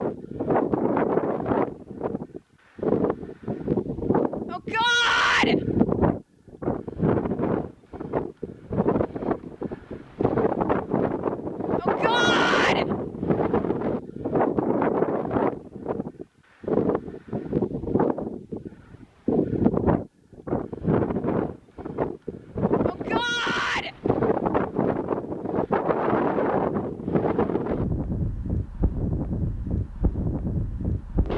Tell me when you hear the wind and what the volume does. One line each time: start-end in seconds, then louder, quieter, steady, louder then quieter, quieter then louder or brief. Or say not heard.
0.0-31.3 steady.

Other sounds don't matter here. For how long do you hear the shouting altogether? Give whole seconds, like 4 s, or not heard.
3 s.